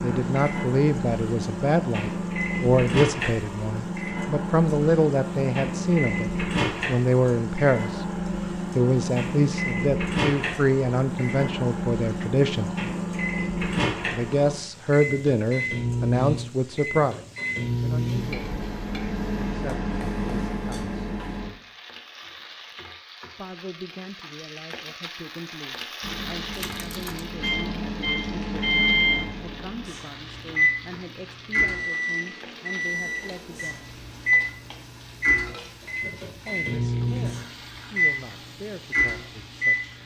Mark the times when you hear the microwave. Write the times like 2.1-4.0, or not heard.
0.0-21.5, 26.0-40.0.